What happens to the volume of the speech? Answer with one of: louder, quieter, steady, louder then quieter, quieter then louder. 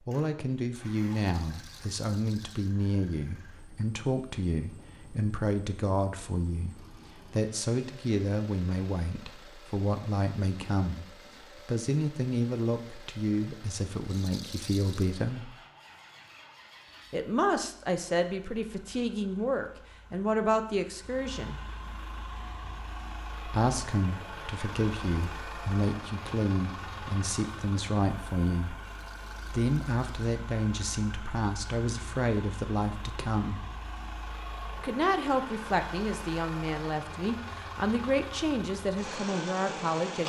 steady.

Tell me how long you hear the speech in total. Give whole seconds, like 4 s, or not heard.
35 s.